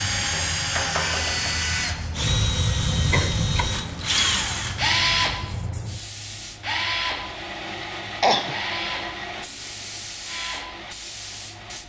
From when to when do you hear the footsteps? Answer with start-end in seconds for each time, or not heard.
not heard.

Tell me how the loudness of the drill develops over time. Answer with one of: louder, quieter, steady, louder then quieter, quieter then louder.
quieter.